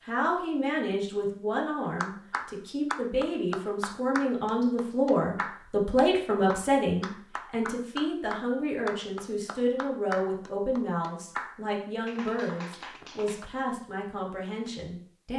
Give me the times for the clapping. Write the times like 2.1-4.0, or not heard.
1.9-13.5.